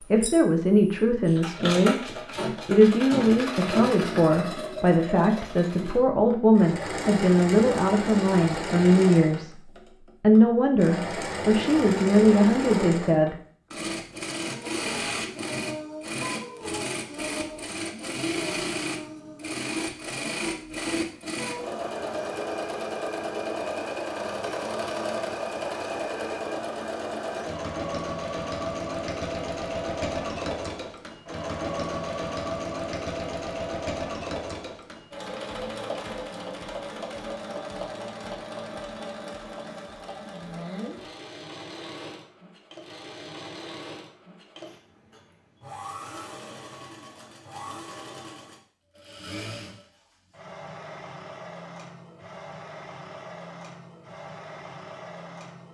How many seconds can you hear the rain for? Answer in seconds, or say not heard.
not heard.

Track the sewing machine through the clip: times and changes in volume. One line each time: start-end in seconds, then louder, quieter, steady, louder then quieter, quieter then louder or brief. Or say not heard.
0.0-55.6 quieter.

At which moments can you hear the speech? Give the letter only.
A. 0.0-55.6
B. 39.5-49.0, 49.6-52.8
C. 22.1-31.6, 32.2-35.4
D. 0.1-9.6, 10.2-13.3
D.